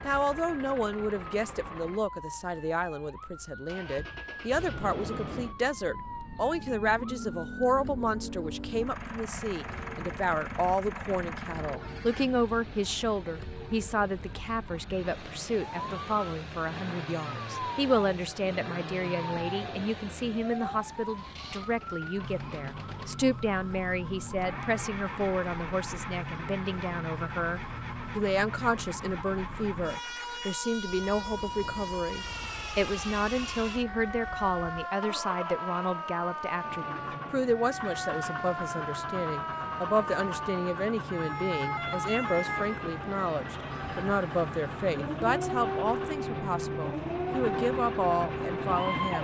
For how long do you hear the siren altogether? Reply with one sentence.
You can hear the siren for 49 seconds altogether.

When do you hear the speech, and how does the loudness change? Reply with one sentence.
You can hear the speech from 0.0 to 49.2 s, at a steady volume.